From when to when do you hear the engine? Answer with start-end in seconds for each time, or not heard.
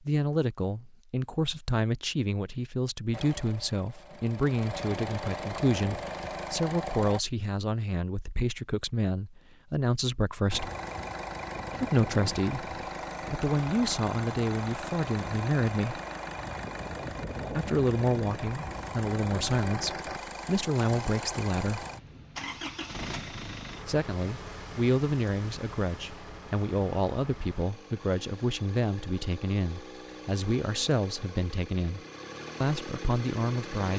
3.1-7.2, 10.5-33.9.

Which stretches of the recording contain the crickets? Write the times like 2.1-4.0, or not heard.
not heard.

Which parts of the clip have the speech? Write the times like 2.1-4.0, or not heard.
0.1-10.7, 11.8-16.0, 17.5-21.9, 23.9-32.0, 32.6-33.9.